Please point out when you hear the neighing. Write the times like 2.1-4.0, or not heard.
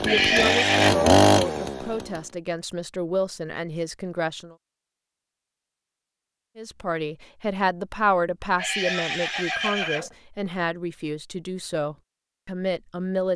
0.1-0.9, 8.6-10.2.